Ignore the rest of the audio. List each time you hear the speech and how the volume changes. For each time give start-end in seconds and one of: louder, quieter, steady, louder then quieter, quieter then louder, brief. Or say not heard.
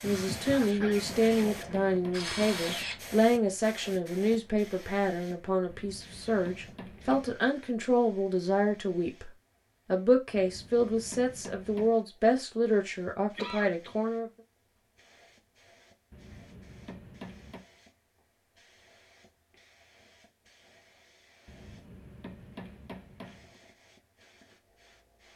0.0-14.3 steady.